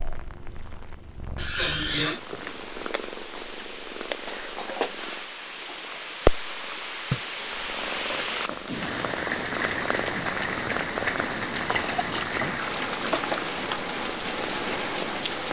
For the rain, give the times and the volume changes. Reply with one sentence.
The rain can be heard from 0.0 to 15.4 s, getting louder.